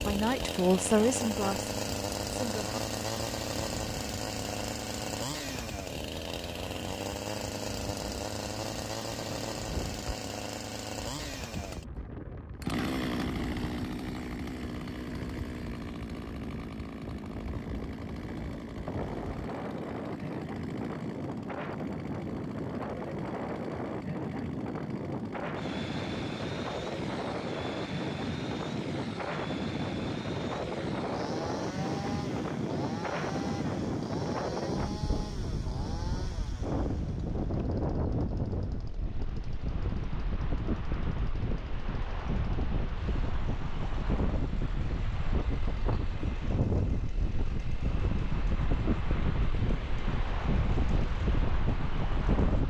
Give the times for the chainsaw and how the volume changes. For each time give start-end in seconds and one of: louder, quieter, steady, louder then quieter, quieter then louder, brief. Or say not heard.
0.0-52.6 quieter.